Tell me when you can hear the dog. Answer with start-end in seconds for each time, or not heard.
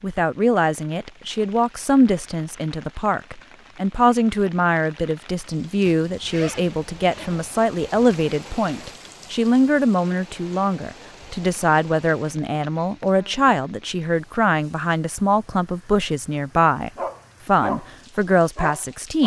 16.9-17.9, 18.6-19.2.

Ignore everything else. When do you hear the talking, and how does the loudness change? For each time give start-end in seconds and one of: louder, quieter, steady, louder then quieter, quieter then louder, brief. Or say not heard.
0.0-19.2 steady.